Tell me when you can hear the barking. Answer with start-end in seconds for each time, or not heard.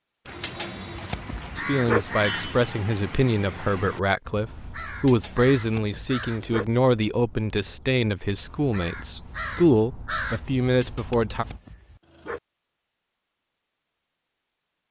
0.4-2.0, 5.0-6.7, 10.8-12.4.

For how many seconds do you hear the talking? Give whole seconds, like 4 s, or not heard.
10 s.